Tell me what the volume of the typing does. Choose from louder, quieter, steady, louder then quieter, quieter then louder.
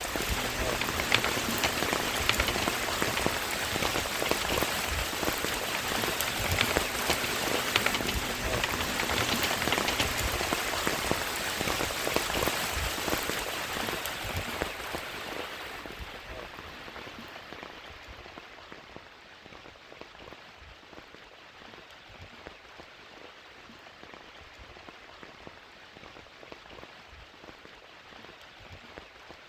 quieter then louder.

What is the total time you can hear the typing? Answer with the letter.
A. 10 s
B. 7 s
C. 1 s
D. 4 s
A.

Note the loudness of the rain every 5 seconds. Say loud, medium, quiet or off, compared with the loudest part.
loud, loud, loud, quiet, quiet, quiet.